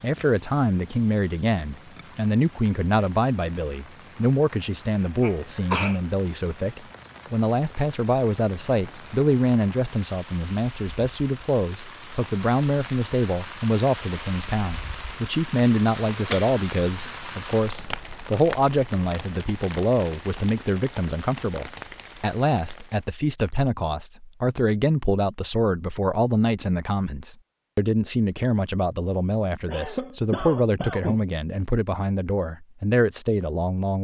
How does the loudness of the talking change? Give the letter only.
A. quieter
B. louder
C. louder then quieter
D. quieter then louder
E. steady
E.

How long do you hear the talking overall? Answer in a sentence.
You can hear the talking for 34 seconds altogether.